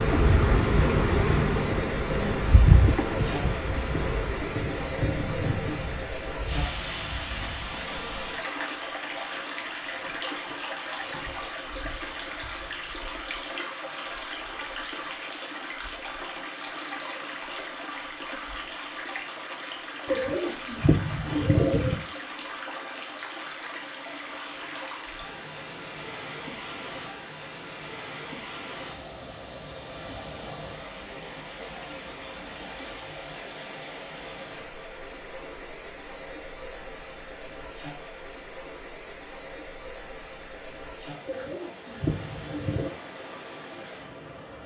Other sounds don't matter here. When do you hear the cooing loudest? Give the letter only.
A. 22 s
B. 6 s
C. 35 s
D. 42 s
A.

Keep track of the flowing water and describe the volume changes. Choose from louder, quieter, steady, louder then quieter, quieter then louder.
quieter.